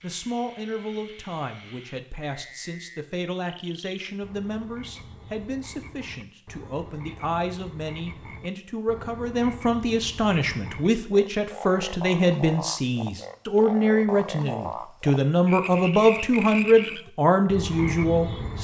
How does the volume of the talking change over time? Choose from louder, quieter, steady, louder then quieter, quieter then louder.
louder.